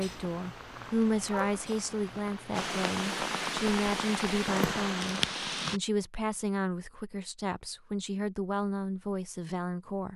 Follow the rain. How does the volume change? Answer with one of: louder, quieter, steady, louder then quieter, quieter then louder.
louder.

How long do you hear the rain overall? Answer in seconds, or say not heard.
6 s.